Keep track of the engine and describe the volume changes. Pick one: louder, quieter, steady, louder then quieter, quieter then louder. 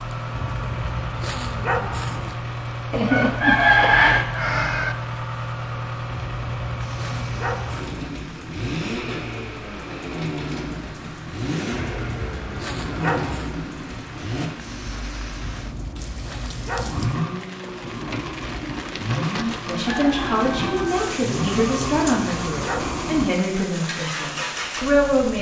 steady.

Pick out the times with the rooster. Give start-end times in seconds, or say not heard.
2.9-5.0, 19.6-20.9.